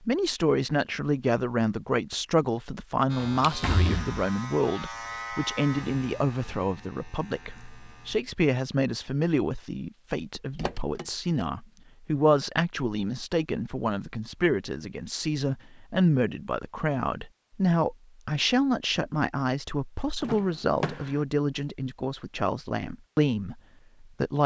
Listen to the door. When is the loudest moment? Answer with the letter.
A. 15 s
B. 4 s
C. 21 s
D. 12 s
B.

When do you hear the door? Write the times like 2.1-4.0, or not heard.
3.4-4.2, 10.6-11.4, 20.2-21.1.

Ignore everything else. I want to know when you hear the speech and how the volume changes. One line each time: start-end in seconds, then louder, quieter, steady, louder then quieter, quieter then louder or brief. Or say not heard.
0.0-24.4 steady.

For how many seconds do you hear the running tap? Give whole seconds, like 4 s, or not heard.
not heard.